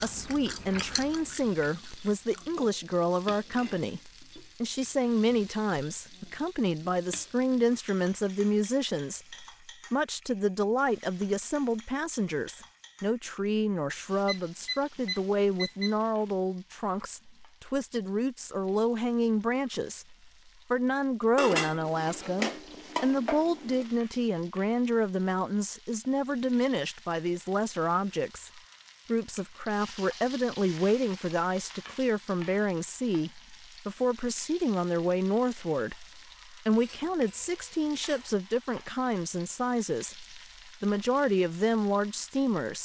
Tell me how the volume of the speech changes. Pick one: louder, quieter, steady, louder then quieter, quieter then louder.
steady.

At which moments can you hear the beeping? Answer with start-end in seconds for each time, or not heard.
14.2-15.9.